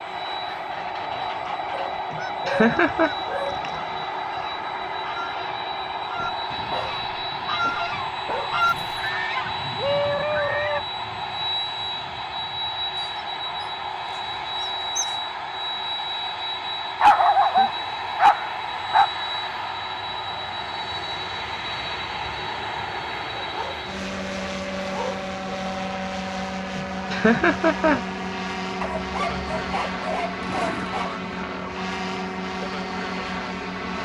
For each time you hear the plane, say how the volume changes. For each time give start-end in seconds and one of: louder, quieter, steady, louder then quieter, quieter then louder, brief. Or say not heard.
0.0-34.0 steady.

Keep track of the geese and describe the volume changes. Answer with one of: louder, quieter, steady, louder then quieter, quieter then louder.
louder.